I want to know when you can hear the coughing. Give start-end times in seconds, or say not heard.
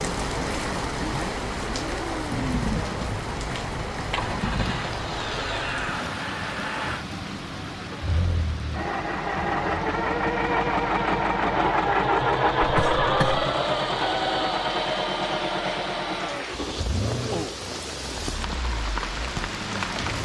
12.6-13.4.